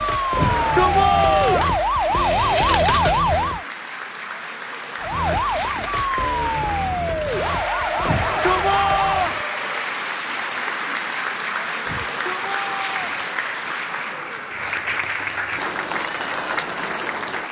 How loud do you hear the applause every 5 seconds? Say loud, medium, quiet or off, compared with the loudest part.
medium, loud, loud, loud.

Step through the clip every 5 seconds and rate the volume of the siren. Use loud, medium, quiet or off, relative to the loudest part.
loud, medium, off, off.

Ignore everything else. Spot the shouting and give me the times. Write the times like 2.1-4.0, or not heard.
0.3-1.8, 8.1-9.4, 11.8-13.2.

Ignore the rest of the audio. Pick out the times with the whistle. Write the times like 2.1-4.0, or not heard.
not heard.